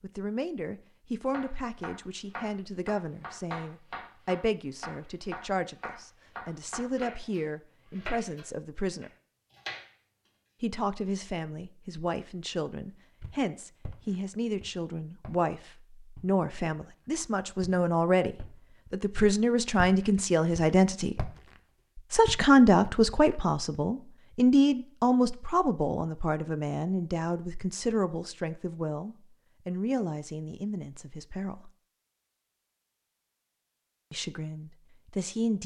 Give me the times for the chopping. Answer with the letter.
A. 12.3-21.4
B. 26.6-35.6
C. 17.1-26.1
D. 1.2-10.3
D.